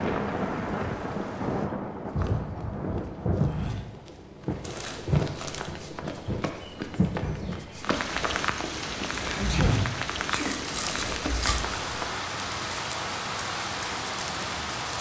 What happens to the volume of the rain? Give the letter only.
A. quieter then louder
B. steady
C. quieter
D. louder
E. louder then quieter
B.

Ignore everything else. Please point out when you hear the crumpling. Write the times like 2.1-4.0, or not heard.
4.6-5.8, 10.3-11.7.